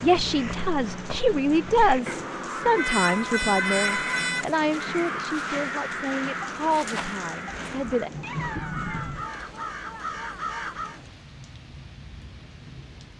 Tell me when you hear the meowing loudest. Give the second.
4 s.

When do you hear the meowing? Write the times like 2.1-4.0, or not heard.
2.8-4.5, 7.5-9.2.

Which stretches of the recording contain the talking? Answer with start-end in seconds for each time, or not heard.
0.0-8.1.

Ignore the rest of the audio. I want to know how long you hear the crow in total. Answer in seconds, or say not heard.
11 s.